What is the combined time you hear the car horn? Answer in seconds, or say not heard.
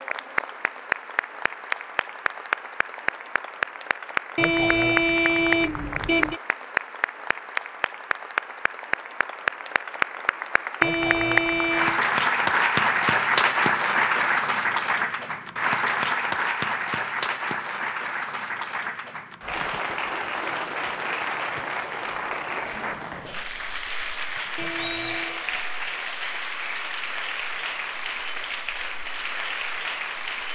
4 s.